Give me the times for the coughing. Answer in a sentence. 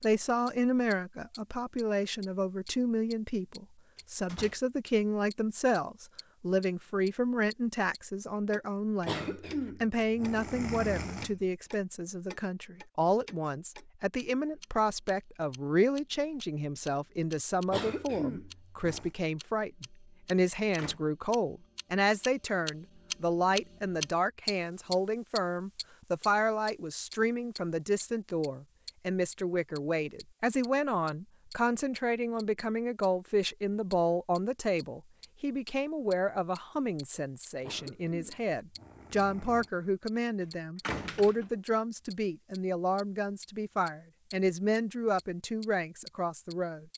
You can hear the coughing from 9.1 to 11.4 s, from 17.7 to 19.1 s and from 37.6 to 39.7 s.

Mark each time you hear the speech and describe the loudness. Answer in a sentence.
You can hear the speech from 0.0 to 46.9 s, at a steady volume.